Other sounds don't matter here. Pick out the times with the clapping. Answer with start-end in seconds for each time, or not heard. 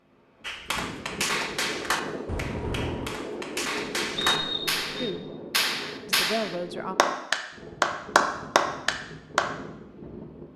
0.5-9.5.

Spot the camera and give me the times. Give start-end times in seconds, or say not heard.
2.2-3.2.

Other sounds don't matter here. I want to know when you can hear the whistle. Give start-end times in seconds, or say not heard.
4.2-5.1.